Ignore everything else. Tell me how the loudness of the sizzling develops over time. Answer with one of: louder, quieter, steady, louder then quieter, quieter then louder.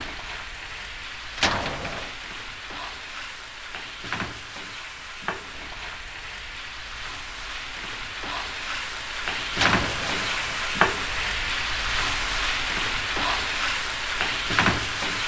louder.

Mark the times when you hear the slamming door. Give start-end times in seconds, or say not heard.
1.4-2.1, 9.6-10.8.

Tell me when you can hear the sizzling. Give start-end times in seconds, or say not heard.
0.0-15.2.